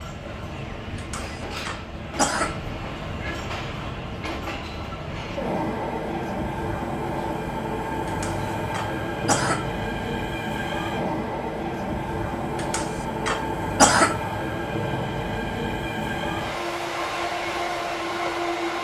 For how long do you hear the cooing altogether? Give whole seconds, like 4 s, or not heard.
not heard.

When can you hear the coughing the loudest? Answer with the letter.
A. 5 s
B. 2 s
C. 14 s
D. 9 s
C.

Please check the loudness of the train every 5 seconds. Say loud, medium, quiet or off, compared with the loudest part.
medium, loud, loud, loud.